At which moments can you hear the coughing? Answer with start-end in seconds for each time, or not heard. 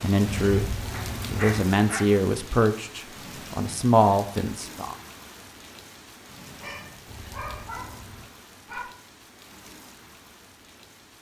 not heard.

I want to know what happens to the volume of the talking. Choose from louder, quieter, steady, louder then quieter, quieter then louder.
quieter then louder.